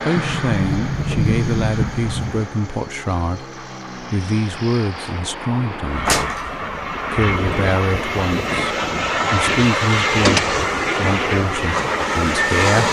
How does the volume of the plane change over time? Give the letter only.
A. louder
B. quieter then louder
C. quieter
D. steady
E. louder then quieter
A.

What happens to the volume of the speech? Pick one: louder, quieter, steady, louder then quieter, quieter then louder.
steady.